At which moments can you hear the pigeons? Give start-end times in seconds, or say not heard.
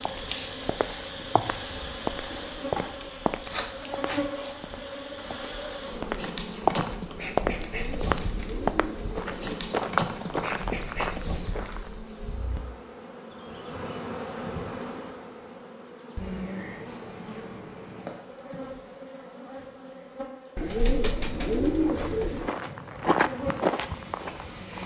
7.5-9.6, 20.6-22.5.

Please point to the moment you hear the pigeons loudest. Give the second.
22 s.